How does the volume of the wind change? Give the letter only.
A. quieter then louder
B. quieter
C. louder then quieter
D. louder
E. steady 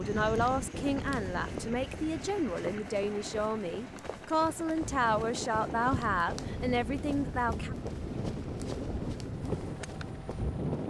A.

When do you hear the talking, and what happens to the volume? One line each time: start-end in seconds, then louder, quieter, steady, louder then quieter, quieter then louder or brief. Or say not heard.
0.0-7.8 steady.